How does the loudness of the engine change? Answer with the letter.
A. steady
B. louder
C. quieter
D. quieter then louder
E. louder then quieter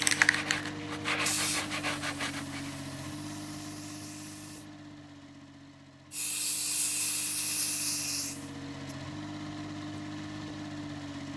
D.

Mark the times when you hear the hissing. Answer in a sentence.
You can hear the hissing from 0.0 to 4.7 s and from 6.1 to 8.9 s.